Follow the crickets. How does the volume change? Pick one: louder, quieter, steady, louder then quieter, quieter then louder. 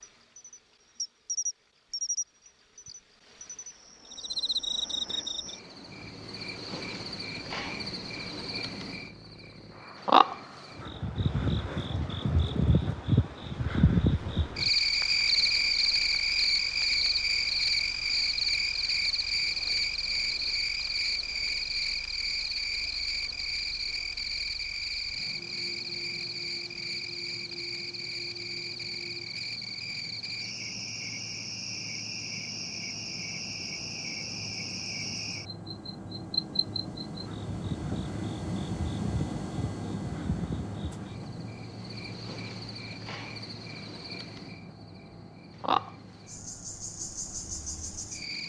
louder then quieter.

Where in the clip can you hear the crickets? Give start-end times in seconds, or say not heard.
0.0-48.4.